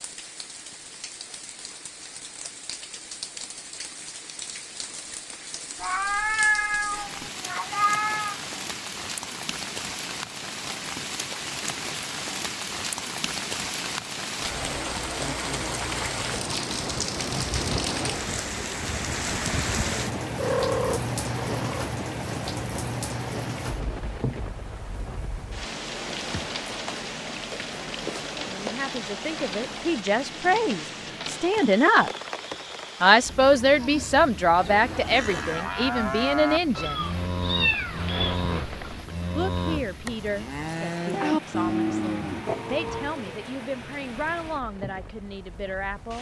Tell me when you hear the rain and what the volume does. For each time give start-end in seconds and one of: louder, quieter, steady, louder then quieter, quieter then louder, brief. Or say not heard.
0.0-46.1 louder then quieter.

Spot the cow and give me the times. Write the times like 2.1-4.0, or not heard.
33.6-43.5.